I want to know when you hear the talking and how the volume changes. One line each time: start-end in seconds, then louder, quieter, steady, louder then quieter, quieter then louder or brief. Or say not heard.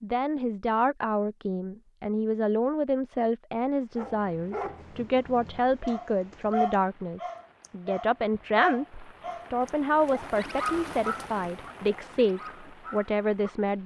0.0-13.8 steady.